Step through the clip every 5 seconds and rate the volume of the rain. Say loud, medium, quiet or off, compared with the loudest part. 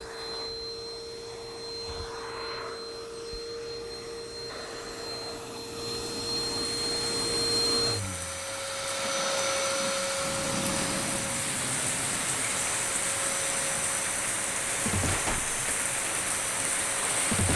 off, medium, loud, loud.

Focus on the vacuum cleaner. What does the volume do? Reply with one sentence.
The volume of the vacuum cleaner goes up, then down.